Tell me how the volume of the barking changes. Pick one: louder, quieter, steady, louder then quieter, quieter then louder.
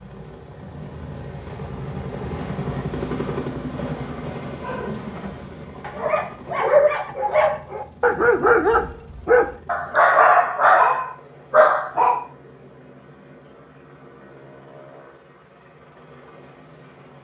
louder.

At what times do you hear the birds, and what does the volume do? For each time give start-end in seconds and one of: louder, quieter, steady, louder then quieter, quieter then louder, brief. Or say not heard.
not heard.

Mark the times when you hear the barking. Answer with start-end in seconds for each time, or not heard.
4.6-12.2.